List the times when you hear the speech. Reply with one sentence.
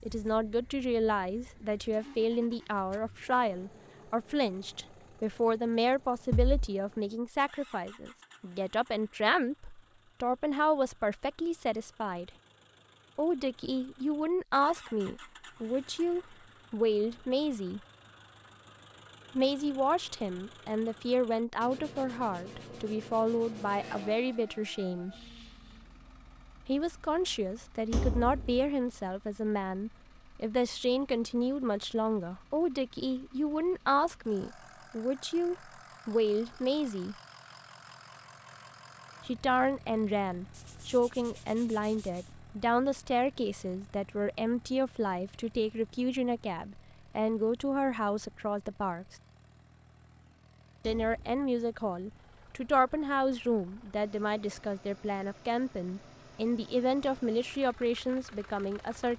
The speech can be heard from 0.0 to 12.3 s, from 13.2 to 17.8 s, from 19.4 to 25.1 s, from 26.6 to 37.1 s, from 39.2 to 49.1 s and from 50.9 to 59.1 s.